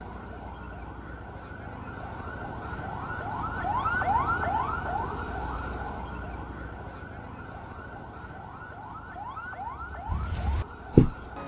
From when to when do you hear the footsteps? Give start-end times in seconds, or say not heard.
9.8-11.4.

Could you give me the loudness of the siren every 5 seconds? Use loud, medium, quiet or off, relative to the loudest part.
loud, medium, medium.